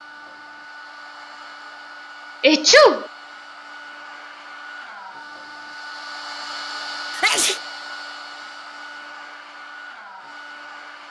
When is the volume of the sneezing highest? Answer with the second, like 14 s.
3 s.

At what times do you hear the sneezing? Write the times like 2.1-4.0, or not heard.
2.4-3.0, 7.2-7.6.